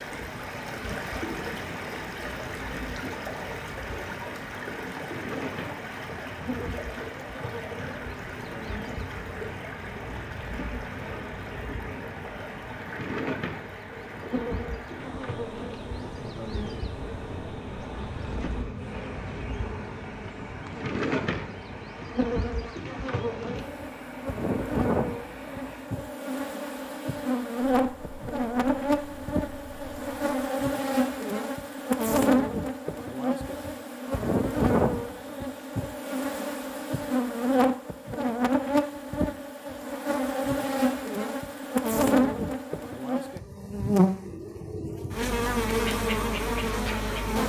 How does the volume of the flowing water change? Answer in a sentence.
The loudness of the flowing water goes down.